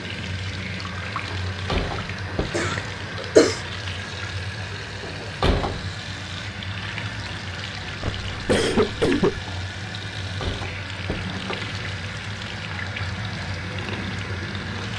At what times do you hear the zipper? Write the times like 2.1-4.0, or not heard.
not heard.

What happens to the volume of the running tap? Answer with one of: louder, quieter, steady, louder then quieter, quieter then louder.
steady.